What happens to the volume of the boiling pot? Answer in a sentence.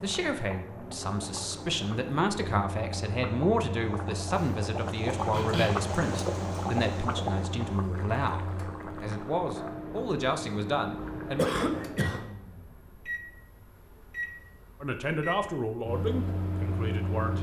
The volume of the boiling pot goes up, then down.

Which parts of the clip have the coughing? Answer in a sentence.
You can hear the coughing from 4.3 to 5.8 s and from 11.3 to 12.2 s.